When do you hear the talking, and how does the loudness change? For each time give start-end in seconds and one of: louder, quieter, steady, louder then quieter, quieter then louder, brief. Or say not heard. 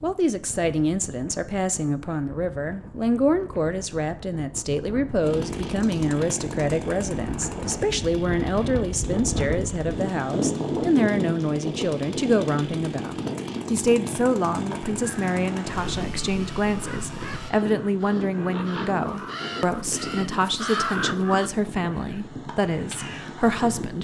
0.0-23.9 steady.